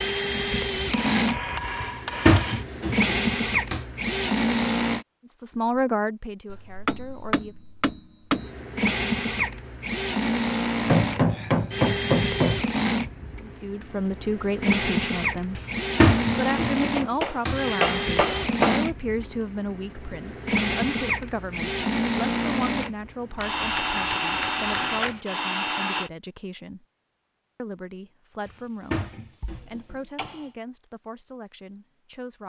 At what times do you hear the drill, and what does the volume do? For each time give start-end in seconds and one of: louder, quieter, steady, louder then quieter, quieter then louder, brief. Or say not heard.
0.0-5.0 quieter then louder
8.3-26.1 steady.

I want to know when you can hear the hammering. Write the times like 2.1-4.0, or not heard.
0.9-2.6, 6.5-8.5, 10.8-12.7, 16.9-18.8, 23.4-25.2, 29.4-30.4.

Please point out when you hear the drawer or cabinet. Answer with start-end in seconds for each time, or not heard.
1.8-3.9, 15.6-17.7, 28.4-30.1.